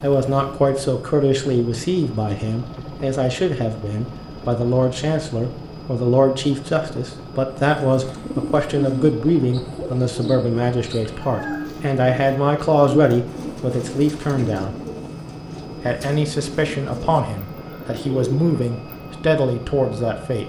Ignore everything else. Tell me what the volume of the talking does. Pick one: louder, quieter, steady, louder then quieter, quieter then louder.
steady.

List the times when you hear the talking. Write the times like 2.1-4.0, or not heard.
0.0-14.8, 15.8-20.4.